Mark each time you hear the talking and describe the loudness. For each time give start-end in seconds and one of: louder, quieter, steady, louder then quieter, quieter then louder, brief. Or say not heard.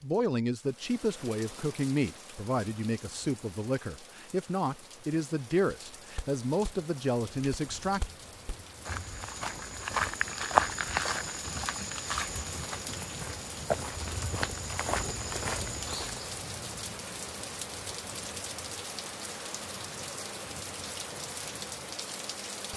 0.0-8.0 steady.